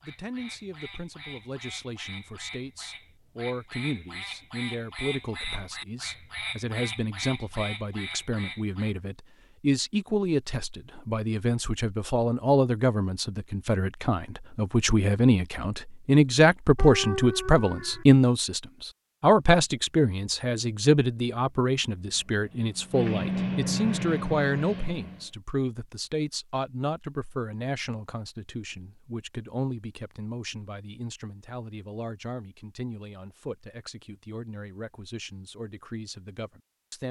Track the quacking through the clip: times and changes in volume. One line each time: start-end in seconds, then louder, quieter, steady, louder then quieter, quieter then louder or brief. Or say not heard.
0.0-8.9 louder.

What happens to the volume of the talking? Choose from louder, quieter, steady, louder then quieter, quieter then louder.
louder then quieter.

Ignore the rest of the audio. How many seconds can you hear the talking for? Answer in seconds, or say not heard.
37 s.